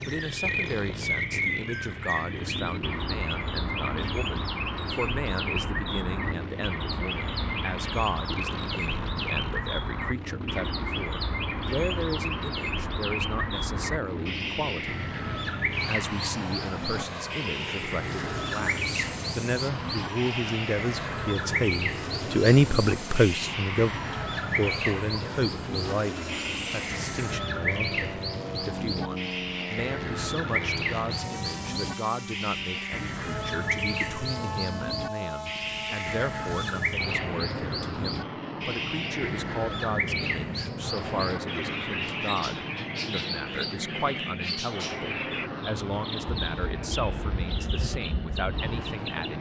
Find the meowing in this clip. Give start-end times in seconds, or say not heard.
not heard.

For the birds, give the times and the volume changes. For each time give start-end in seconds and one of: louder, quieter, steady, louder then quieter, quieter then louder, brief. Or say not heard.
0.0-49.3 steady.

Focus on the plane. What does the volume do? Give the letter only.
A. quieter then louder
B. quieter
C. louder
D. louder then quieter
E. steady
E.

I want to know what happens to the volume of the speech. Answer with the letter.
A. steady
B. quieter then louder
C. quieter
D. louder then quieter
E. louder
D.